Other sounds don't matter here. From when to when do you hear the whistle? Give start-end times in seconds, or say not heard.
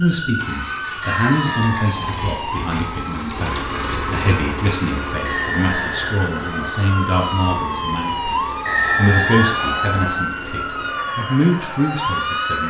1.0-2.0, 5.2-7.0, 8.7-10.2.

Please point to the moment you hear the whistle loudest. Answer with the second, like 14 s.
9 s.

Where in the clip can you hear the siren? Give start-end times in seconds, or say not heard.
0.0-12.6.